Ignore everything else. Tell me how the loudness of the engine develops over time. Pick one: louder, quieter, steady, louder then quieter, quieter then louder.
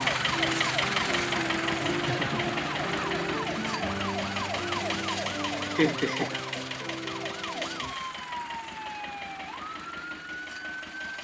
quieter.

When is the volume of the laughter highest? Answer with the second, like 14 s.
6 s.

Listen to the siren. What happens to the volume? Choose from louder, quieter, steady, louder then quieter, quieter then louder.
quieter.